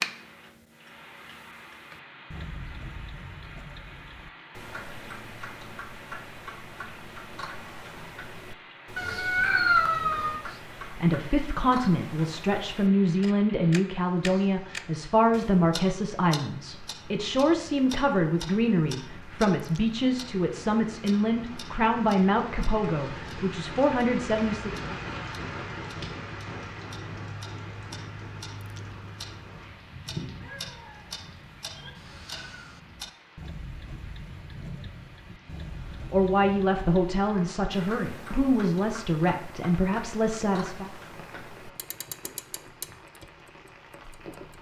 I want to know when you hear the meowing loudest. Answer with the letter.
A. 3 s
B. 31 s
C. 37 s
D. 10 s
D.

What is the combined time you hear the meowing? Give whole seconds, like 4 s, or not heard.
3 s.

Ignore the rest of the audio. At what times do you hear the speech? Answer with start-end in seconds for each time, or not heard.
10.4-24.9, 36.1-40.9.